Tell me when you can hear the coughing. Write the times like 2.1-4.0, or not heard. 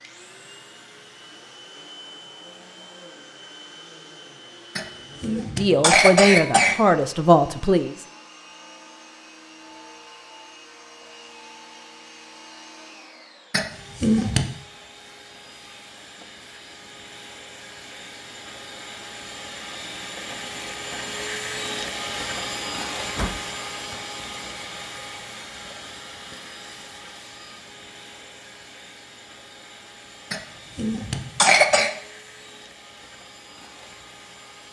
4.8-6.8, 13.5-14.5, 30.3-31.9.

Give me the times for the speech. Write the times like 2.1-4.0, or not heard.
5.3-8.0.